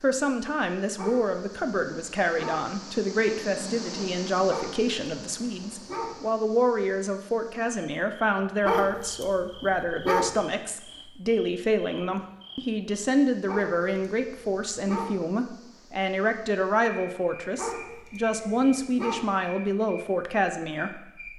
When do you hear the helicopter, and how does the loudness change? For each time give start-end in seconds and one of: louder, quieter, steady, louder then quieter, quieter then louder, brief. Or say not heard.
not heard.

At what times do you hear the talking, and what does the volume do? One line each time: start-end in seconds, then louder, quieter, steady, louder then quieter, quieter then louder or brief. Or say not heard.
0.0-21.3 steady.